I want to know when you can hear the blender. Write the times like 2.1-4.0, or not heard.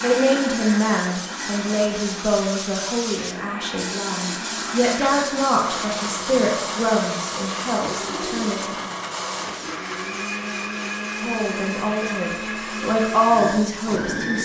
0.0-14.3.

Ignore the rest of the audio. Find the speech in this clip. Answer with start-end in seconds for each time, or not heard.
0.0-8.8, 11.2-14.3.